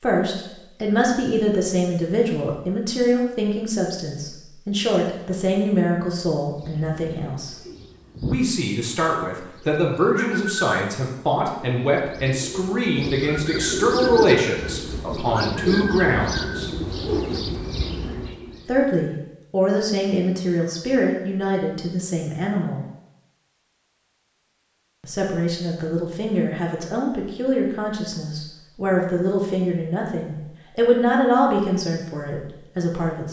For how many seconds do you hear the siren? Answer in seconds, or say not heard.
not heard.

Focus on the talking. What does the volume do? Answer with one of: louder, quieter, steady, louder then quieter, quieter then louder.
steady.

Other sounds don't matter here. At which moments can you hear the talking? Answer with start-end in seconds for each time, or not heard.
0.0-7.5, 8.2-16.7, 18.6-22.8, 25.0-33.2.